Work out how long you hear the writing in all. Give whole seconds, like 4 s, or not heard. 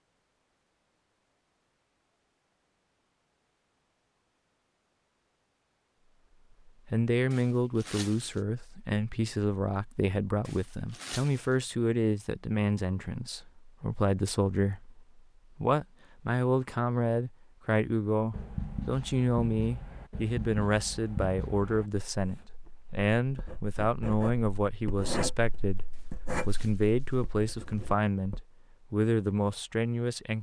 10 s.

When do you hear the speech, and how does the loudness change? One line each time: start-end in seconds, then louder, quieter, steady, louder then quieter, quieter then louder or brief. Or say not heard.
6.7-30.3 steady.